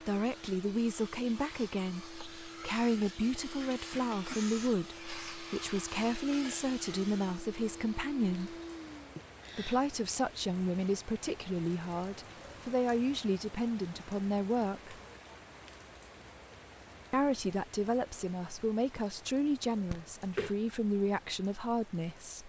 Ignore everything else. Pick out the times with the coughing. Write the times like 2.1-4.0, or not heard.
3.7-4.5, 9.2-9.8, 19.9-20.6.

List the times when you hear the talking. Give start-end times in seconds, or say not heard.
0.1-8.6, 9.6-15.0, 17.1-22.4.